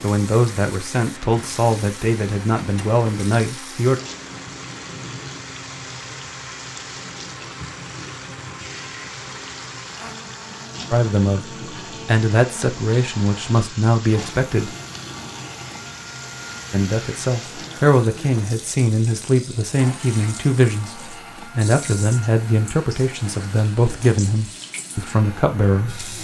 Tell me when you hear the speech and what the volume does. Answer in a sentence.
The speech can be heard from 0.0 to 4.0 s, at a steady volume; briefly from 10.9 to 11.4 s; briefly from 12.1 to 14.7 s; and from 16.7 to 26.1 s, at a steady volume.